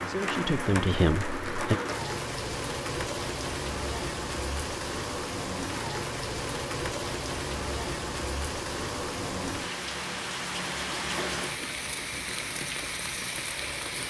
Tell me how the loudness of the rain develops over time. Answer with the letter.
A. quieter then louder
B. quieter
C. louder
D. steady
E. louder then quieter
D.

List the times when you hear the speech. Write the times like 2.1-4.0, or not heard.
0.1-1.8.